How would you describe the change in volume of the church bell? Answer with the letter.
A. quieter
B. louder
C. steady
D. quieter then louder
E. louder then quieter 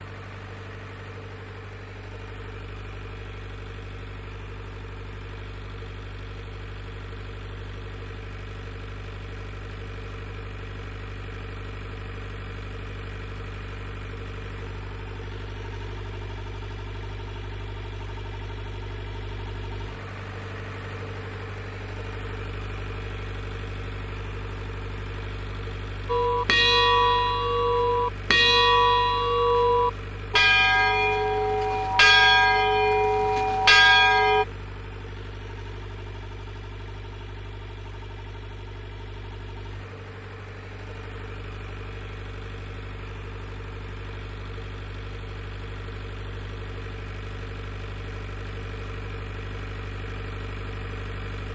C.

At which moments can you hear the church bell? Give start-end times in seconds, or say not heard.
26.1-34.5.